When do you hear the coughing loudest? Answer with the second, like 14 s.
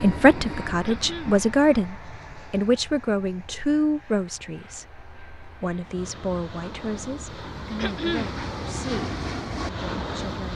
8 s.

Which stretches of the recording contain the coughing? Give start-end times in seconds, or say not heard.
0.8-1.4, 7.8-8.3.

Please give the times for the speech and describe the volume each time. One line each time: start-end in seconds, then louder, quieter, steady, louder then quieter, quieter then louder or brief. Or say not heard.
0.0-10.5 quieter.